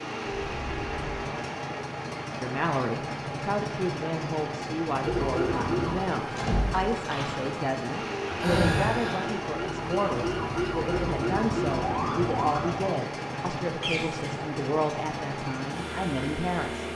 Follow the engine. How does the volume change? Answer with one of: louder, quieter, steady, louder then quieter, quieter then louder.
steady.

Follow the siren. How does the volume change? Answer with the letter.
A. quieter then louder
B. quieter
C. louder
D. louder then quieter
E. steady
A.